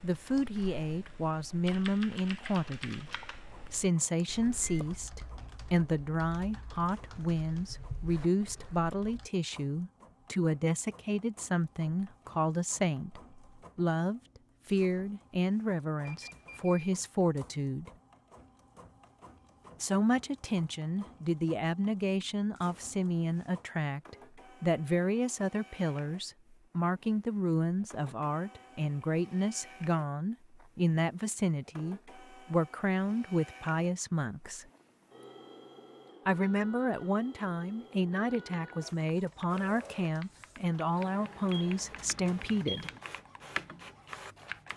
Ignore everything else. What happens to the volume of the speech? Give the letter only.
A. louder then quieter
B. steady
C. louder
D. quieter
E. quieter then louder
B.